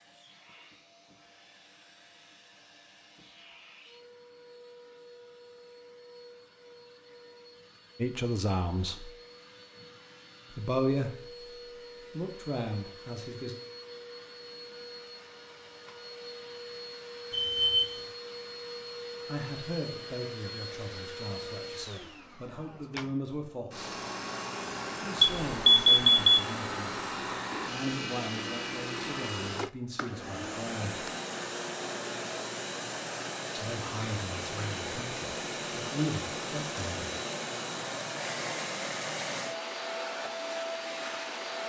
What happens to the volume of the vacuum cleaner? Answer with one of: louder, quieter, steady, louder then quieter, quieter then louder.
louder.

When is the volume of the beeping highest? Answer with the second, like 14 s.
26 s.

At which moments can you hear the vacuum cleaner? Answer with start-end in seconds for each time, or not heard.
0.0-41.6.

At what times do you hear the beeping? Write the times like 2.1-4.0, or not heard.
17.3-17.9, 25.2-26.4.